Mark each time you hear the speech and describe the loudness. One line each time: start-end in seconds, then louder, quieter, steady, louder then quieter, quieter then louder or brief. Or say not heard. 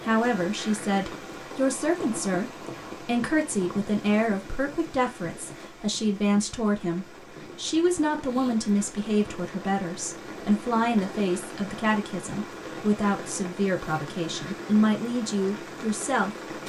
0.0-16.4 steady.